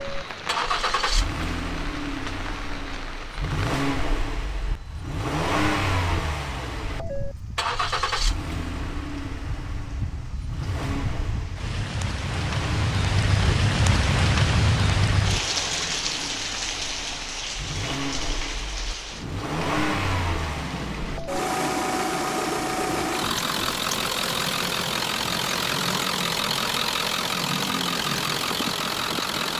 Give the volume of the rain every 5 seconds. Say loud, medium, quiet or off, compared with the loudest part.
medium, quiet, loud, loud, medium, medium.